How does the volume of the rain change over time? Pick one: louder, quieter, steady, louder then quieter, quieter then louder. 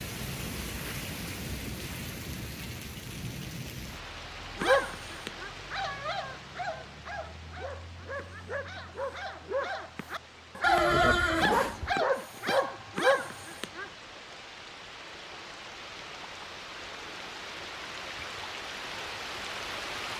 quieter then louder.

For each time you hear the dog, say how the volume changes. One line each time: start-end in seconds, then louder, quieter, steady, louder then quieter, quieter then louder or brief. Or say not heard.
4.5-13.9 louder.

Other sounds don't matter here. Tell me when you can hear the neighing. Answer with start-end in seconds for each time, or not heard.
10.6-11.9.